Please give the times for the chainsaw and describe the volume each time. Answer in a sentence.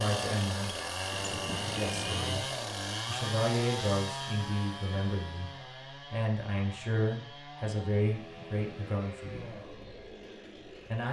You can hear the chainsaw from 0.0 to 11.0 s, getting quieter.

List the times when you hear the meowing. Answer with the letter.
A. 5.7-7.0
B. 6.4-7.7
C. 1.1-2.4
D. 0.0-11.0
C.